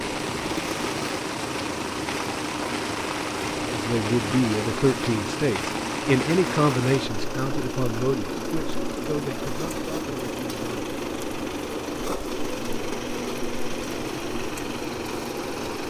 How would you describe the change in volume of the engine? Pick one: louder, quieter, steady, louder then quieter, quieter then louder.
steady.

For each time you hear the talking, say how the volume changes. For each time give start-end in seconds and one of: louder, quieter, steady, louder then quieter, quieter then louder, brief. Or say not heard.
3.7-10.9 quieter.